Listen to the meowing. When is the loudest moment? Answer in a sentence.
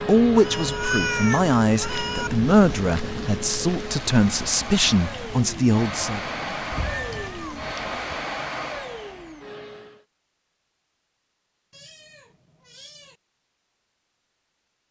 The loudest moment of the meowing is at 1 second.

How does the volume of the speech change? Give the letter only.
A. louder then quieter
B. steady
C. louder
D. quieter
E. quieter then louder
B.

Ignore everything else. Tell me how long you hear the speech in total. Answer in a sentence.
The speech can be heard for 6 seconds in total.